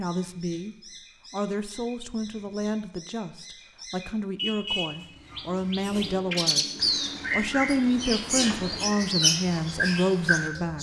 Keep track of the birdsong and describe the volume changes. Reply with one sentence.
The volume of the birdsong goes up.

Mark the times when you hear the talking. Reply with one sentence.
You can hear the talking from 0.0 to 6.7 s and from 7.3 to 10.7 s.